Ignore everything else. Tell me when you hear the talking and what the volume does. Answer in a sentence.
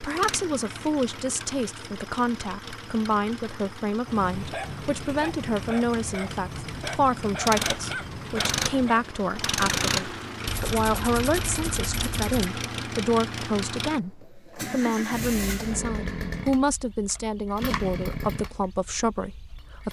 The talking can be heard from 0.0 to 19.8 s, at a steady volume.